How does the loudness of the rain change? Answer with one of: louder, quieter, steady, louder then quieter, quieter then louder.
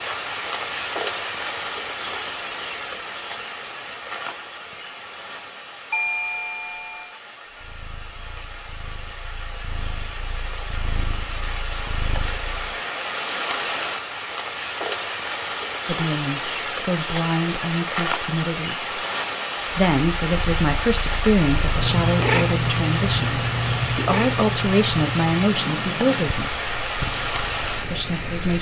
quieter then louder.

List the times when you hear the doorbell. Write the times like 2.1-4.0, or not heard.
5.9-7.2.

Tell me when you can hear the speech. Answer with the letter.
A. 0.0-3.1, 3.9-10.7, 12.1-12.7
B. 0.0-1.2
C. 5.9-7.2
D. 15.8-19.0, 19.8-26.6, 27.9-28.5
D.